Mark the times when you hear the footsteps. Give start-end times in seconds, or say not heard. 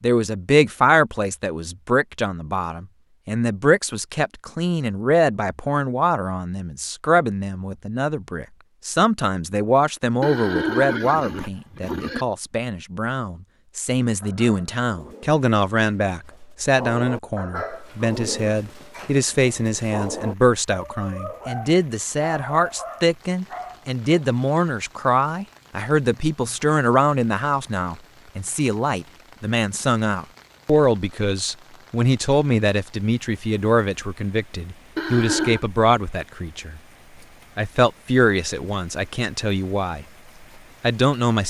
not heard.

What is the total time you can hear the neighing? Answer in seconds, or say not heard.
3 s.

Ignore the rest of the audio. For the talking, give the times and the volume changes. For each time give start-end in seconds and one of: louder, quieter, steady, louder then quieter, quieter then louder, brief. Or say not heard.
0.0-36.8 steady
37.5-40.0 brief
40.8-41.4 brief.